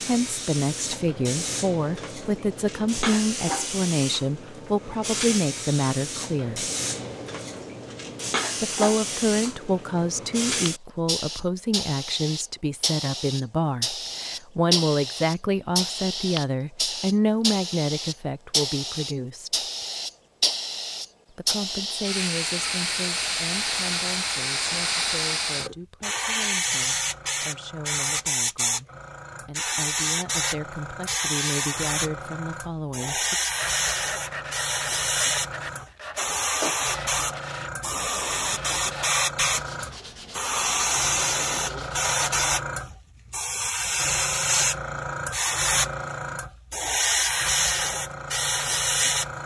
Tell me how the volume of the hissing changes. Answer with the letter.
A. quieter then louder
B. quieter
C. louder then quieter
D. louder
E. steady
D.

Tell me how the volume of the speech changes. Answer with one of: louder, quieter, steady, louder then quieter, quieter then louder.
quieter.